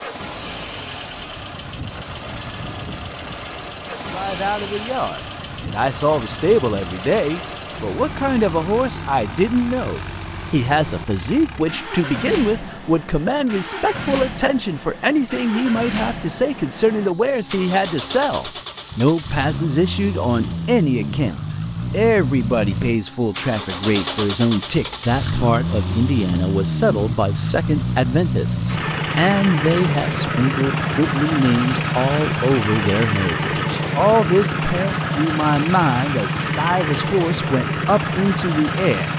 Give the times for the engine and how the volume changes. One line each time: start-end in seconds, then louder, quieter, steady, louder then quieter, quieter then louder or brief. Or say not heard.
0.0-39.1 louder.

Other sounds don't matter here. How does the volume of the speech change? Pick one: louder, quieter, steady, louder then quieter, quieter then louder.
steady.